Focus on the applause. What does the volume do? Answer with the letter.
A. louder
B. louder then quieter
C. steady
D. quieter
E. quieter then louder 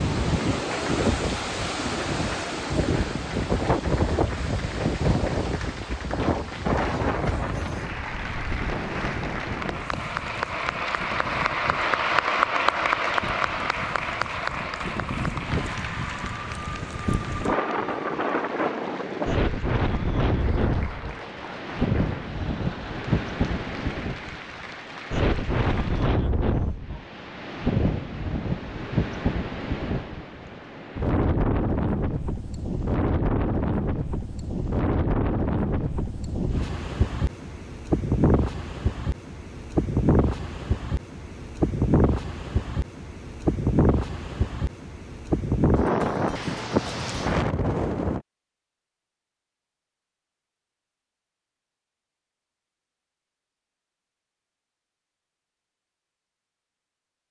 B.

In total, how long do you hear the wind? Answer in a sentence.
The wind can be heard for 48 seconds in total.